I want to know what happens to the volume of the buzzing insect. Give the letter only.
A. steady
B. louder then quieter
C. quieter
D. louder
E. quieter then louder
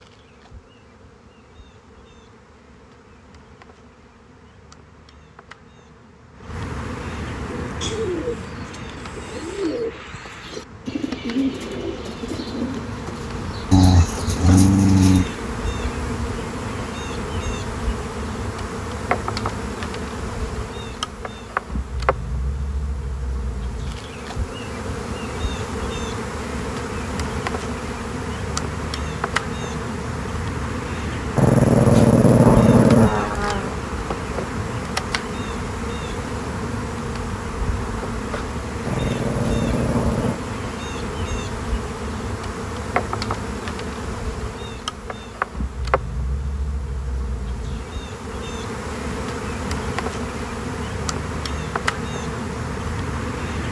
D.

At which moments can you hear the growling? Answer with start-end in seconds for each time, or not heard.
13.7-15.3, 31.4-33.8, 38.9-40.4.